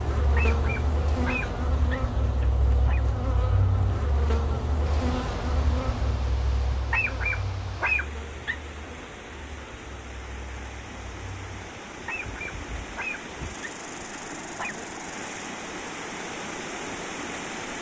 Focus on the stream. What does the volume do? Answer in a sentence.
The volume of the stream goes up.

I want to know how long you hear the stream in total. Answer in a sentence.
You can hear the stream for 13 seconds altogether.